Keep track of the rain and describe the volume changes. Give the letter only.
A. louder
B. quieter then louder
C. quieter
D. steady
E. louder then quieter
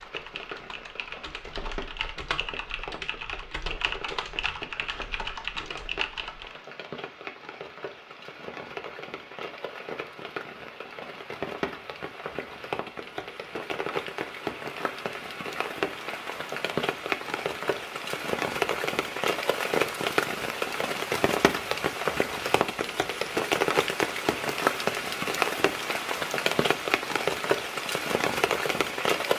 A.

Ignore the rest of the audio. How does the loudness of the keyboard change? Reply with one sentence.
The volume of the keyboard goes up.